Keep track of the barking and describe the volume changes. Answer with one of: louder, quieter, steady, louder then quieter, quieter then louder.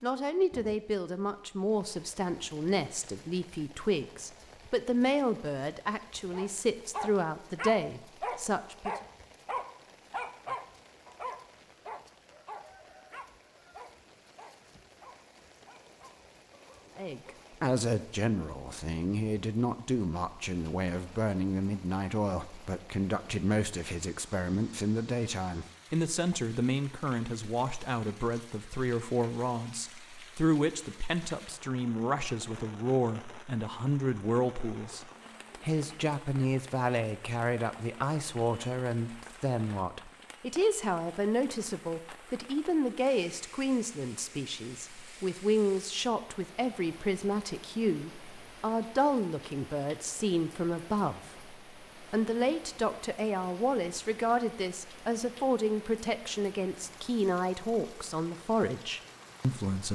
quieter.